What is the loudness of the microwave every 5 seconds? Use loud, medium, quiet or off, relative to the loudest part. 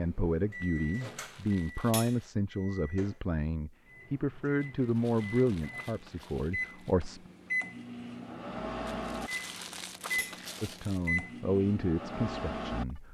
medium, loud, loud.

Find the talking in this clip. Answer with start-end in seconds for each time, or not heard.
0.0-7.2, 10.6-13.0.